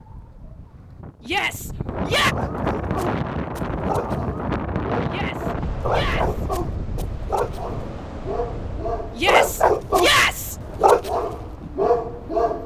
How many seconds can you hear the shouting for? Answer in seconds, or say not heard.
4 s.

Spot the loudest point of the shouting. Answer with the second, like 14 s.
10 s.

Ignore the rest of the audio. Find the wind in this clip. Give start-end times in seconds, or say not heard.
0.0-12.6.